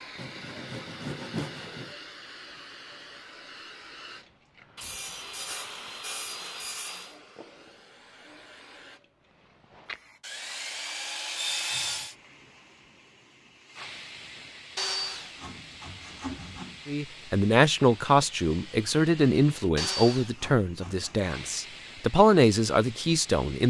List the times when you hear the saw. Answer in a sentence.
The saw can be heard from 0.1 to 1.9 s, from 4.8 to 7.2 s, from 10.2 to 12.2 s, from 14.8 to 16.9 s and from 19.8 to 21.3 s.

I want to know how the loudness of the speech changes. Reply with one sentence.
The volume of the speech goes down, then up.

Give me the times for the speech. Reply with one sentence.
The speech can be heard from 16.9 to 23.6 s.